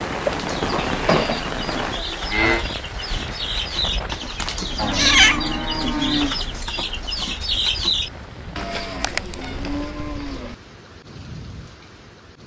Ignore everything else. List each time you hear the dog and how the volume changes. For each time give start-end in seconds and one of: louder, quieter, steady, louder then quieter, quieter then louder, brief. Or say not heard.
not heard.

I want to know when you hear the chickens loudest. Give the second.
8 s.